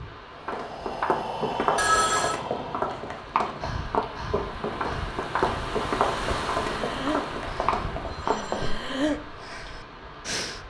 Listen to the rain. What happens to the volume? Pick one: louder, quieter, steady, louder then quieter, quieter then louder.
louder then quieter.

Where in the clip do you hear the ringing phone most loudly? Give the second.
2 s.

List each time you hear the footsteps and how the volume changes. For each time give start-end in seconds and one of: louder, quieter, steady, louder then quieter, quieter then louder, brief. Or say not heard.
0.5-8.8 steady.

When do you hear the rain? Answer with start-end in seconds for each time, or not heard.
0.0-10.6.